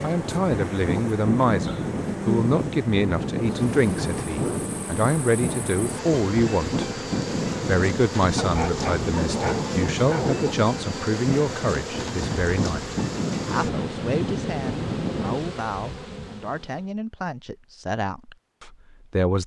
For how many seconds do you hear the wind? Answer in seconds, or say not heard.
15 s.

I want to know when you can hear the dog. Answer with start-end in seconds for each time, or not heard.
8.3-10.4.